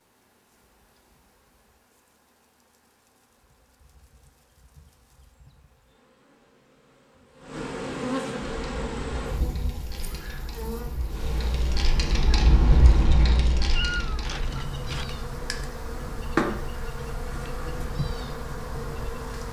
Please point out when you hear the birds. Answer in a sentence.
The birds can't be heard in this clip.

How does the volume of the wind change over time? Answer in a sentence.
The volume of the wind goes up, then down.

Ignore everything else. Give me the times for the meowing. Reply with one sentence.
You can hear the meowing from 13.7 to 15.1 s.